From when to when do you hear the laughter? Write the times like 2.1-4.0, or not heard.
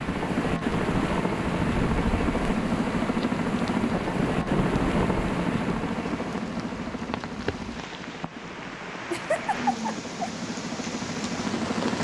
9.1-10.3.